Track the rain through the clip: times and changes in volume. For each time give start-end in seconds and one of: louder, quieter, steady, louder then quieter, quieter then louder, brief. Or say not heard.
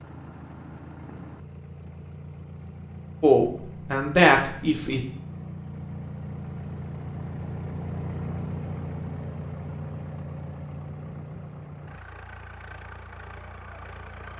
not heard.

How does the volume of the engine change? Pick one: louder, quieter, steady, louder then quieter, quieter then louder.
louder then quieter.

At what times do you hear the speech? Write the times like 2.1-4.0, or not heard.
3.2-5.0.